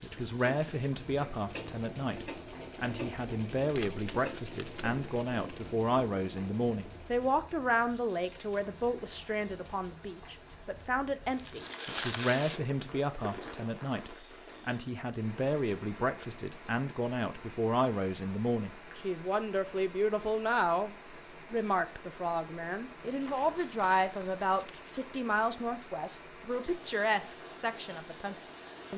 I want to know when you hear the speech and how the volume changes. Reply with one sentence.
The speech can be heard from 0.0 to 28.9 s, at a steady volume.